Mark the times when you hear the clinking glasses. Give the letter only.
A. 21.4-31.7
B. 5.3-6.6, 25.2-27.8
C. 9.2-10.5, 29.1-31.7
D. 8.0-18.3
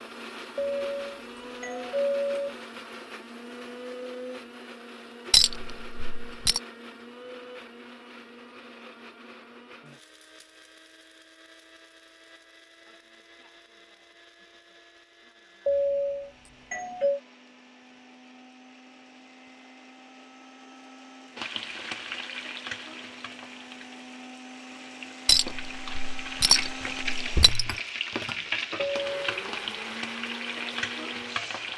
B.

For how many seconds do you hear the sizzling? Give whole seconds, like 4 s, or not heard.
10 s.